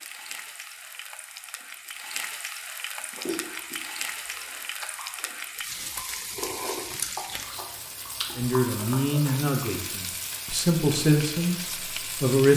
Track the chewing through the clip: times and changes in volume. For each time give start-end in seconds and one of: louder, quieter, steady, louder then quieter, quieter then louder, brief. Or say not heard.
3.1-9.4 louder.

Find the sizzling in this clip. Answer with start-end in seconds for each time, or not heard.
0.0-12.5.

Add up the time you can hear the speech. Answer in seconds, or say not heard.
4 s.